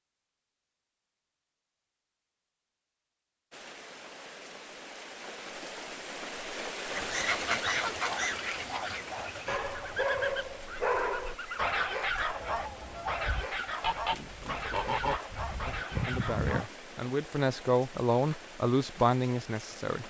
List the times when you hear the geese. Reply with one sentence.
You can hear the geese from 6.9 to 16.6 s.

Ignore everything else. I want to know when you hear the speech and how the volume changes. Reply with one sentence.
You can hear the speech from 14.1 to 20.0 s, getting louder.